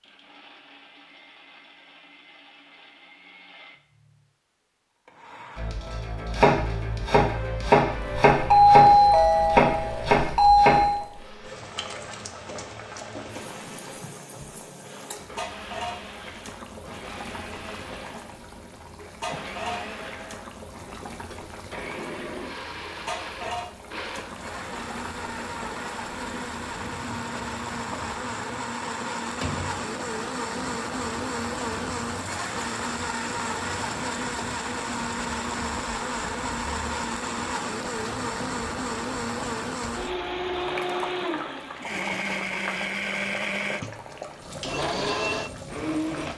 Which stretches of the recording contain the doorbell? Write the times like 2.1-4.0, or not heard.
8.5-11.1.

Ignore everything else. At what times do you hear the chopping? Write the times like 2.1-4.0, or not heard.
5.5-10.8.